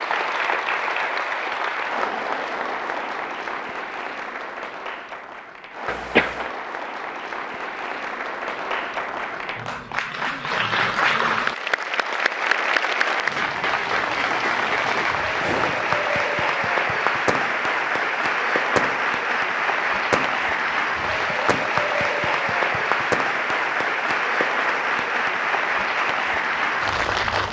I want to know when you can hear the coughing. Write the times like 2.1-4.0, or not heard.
5.8-6.5.